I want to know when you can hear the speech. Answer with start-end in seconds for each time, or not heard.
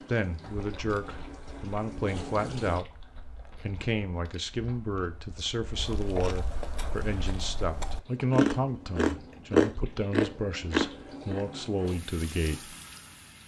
0.1-3.0, 3.6-12.8.